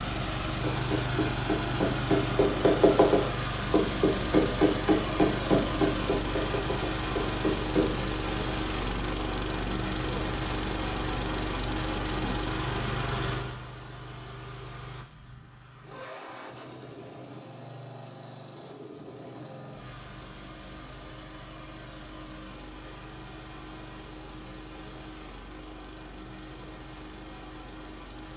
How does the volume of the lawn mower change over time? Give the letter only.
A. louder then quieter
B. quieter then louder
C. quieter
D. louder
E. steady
C.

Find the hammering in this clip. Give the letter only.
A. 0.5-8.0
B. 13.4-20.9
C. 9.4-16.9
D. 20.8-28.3
A.